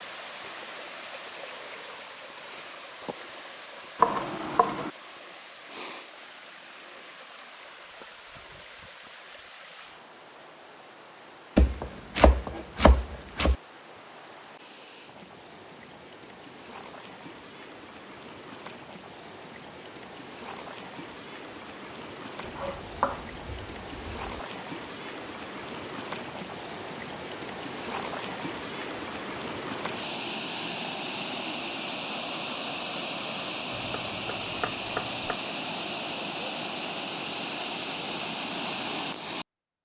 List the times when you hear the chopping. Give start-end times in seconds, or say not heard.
4.0-4.9, 11.6-13.6, 22.4-24.4, 33.7-35.4.